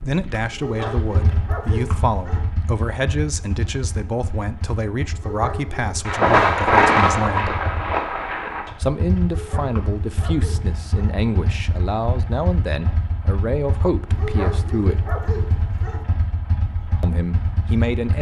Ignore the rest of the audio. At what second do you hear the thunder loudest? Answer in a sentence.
The loudest moment of the thunder is at 7 seconds.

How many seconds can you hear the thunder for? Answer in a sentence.
The thunder can be heard for 3 seconds in total.